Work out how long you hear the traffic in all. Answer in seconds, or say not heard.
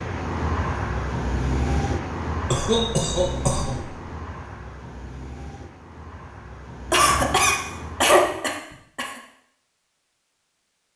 8 s.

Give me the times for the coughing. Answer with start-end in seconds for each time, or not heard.
2.5-4.0, 6.9-9.2.